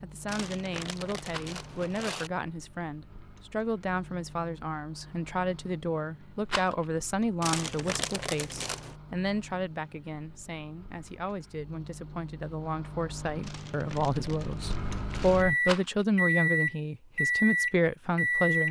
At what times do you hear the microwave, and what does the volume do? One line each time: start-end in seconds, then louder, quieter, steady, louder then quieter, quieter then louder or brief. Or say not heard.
0.0-18.6 louder.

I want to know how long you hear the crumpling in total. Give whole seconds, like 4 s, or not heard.
6 s.